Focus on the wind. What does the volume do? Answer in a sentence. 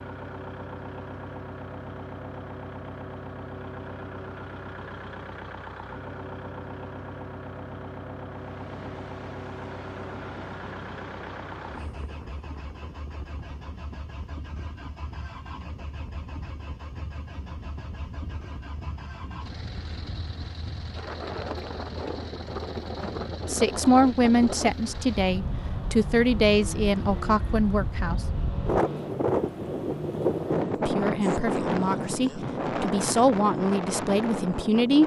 The loudness of the wind goes up.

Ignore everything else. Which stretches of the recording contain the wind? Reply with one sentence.
You can hear the wind from 8.3 to 35.0 s.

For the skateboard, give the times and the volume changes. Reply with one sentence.
You can't hear the skateboard here.